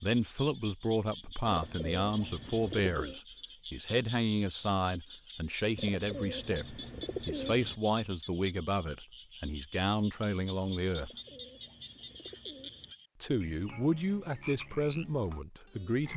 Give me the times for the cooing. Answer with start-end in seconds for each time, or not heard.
1.4-3.2, 5.8-7.8, 10.9-12.9.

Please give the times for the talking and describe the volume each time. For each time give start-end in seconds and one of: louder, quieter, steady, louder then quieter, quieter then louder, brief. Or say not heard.
0.0-11.1 steady
13.2-16.1 brief.